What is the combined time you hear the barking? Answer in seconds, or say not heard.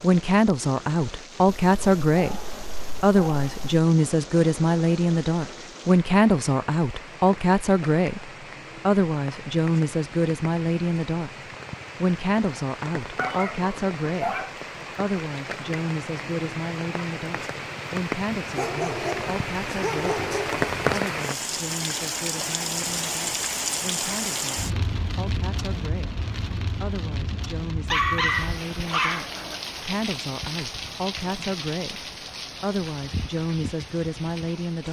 8 s.